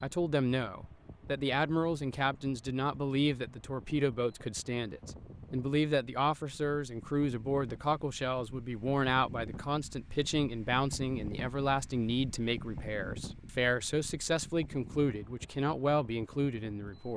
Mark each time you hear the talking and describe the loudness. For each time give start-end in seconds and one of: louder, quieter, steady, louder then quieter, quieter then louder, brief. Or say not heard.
0.0-17.1 steady.